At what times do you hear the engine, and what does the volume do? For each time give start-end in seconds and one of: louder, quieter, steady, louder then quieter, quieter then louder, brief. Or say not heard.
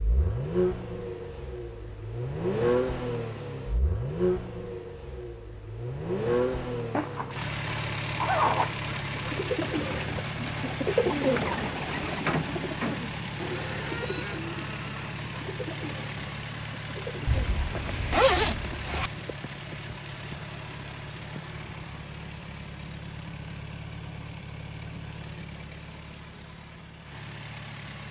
0.0-28.0 quieter.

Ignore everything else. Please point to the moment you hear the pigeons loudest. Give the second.
11 s.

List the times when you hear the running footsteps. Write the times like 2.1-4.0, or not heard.
not heard.